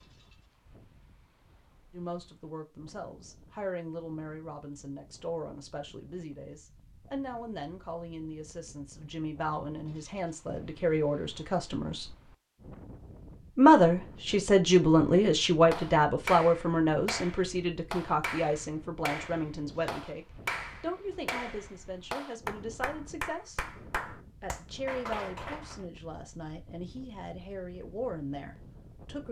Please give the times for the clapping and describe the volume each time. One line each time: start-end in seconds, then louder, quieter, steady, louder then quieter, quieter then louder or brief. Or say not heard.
15.7-25.8 steady.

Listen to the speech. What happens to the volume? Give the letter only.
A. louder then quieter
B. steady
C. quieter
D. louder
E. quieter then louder
A.